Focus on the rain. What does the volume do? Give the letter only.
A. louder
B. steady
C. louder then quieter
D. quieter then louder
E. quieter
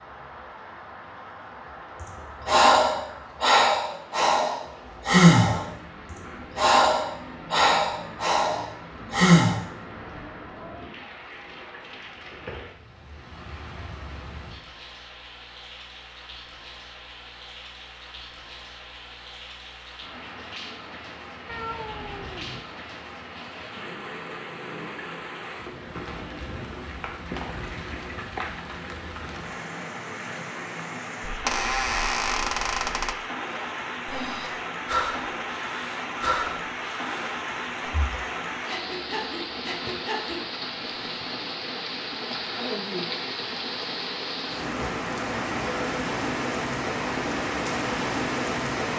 A.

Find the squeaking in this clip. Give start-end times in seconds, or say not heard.
31.2-33.1.